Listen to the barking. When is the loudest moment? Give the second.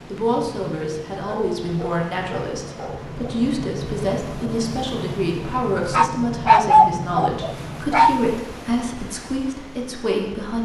7 s.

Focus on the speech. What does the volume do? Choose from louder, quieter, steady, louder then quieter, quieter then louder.
steady.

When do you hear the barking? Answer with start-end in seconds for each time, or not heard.
1.2-3.3, 5.9-8.2.